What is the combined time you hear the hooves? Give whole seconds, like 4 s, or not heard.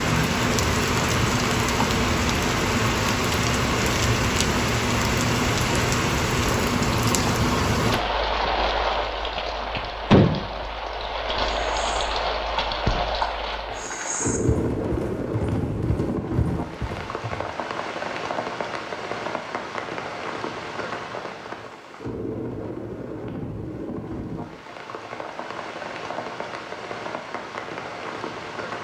6 s.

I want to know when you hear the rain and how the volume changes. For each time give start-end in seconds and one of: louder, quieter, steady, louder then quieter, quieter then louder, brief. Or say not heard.
0.0-28.7 quieter.